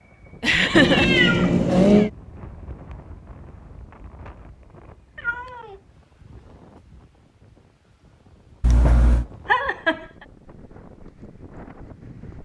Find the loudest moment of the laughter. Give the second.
1 s.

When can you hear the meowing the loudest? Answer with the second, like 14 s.
2 s.